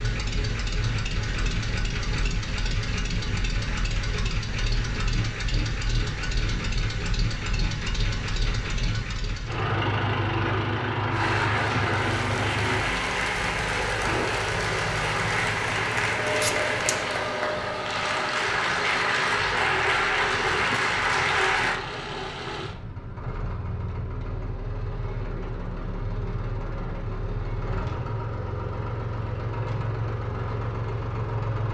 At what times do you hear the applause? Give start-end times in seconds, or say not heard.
11.1-21.8.